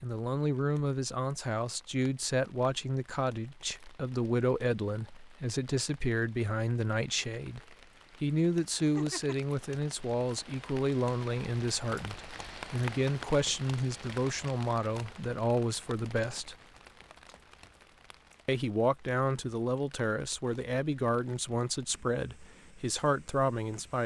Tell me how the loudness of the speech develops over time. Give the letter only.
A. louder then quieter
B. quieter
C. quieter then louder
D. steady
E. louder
D.